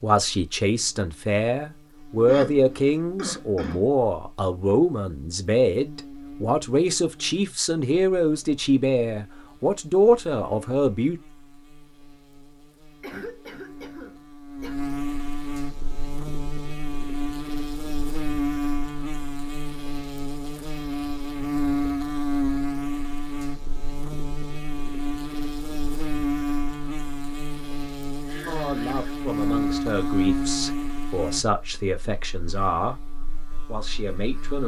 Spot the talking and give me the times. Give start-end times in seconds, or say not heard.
0.0-11.2, 28.4-33.0, 33.6-34.6.